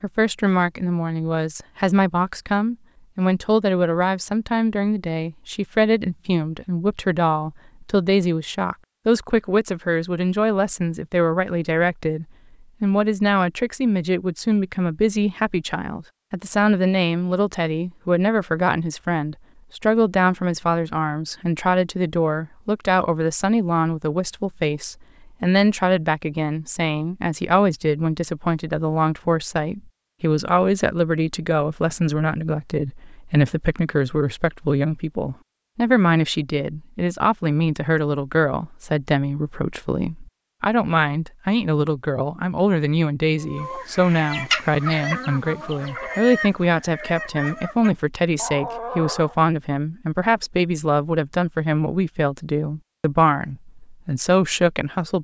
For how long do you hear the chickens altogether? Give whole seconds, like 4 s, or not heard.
6 s.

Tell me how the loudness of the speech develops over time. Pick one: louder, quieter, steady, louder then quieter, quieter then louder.
steady.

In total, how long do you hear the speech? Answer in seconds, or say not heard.
55 s.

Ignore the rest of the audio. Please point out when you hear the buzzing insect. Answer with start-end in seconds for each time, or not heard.
not heard.